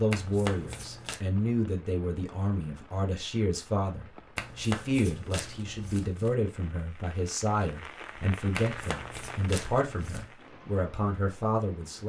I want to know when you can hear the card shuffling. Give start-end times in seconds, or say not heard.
0.1-1.2, 4.3-6.3, 8.6-10.3.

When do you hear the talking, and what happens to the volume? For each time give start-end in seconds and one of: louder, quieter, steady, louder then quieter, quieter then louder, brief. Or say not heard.
0.0-12.0 steady.